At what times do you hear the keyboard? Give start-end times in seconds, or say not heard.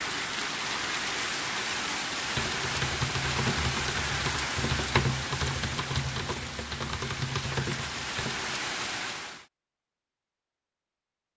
2.2-8.7.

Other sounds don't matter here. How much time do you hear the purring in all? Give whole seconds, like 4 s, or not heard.
not heard.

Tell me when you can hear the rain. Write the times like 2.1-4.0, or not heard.
0.0-9.4.